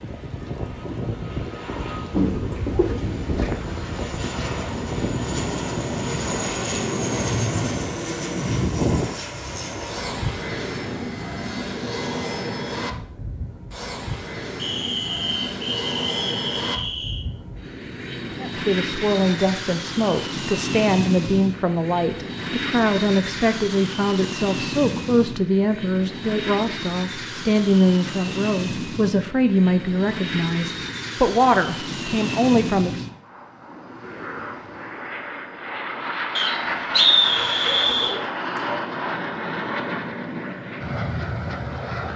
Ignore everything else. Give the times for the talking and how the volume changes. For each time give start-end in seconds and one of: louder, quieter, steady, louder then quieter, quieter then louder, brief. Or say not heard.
18.4-33.0 steady.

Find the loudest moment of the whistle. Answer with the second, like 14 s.
37 s.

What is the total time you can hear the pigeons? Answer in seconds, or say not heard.
2 s.